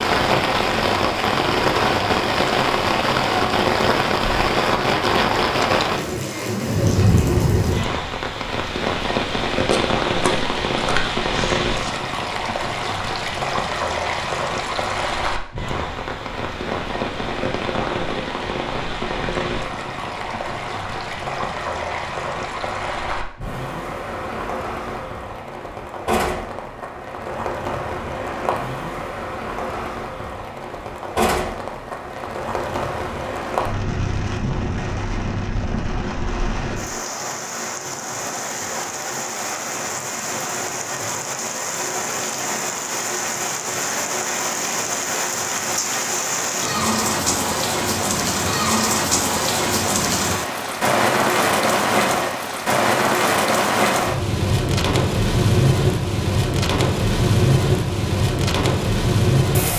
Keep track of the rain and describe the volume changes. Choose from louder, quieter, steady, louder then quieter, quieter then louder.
quieter then louder.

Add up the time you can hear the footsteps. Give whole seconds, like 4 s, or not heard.
2 s.